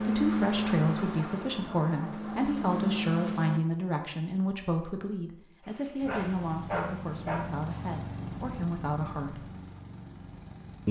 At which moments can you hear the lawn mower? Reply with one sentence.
You can hear the lawn mower from 0.0 to 3.6 s and from 6.0 to 10.8 s.